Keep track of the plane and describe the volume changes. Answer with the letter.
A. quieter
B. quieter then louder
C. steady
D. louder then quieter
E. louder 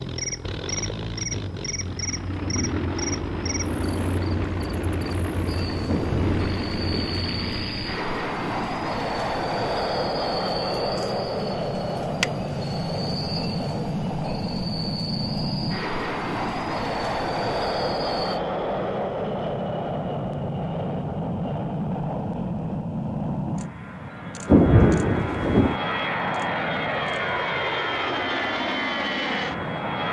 C.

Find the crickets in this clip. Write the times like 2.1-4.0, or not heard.
0.0-18.4.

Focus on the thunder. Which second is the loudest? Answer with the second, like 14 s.
25 s.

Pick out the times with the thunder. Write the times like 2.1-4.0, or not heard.
5.8-7.2, 24.4-25.8.